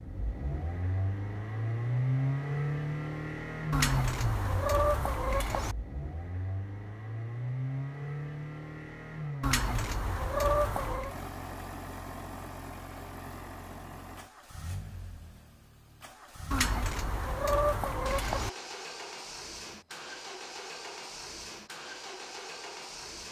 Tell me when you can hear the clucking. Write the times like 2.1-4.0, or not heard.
3.7-5.8, 9.4-11.2, 16.5-18.5.